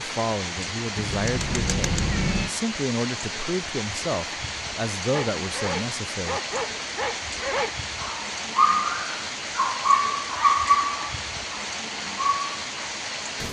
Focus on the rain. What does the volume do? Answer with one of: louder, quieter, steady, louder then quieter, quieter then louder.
steady.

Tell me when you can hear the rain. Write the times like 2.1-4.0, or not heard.
0.0-13.4.